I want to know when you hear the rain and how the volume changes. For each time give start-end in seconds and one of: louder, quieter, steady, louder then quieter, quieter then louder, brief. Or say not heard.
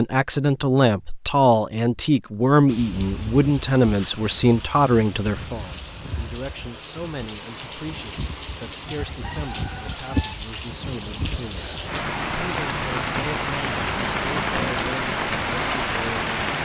2.6-16.5 louder.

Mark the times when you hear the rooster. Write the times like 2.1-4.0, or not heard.
9.1-10.3.